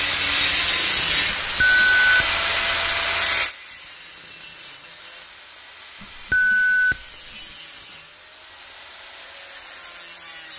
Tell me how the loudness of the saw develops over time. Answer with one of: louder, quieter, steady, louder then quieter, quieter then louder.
quieter.